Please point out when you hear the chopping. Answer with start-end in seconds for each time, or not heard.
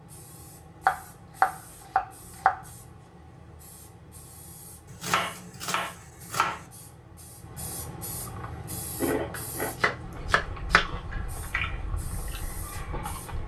0.8-2.6, 4.9-6.7, 9.3-10.8.